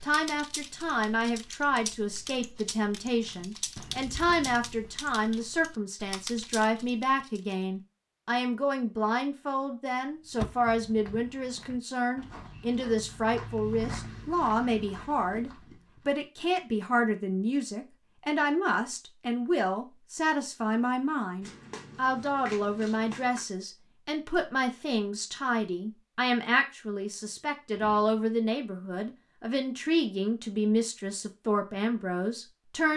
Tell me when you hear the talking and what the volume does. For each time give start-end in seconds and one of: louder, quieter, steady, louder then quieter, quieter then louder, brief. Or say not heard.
0.0-32.9 steady.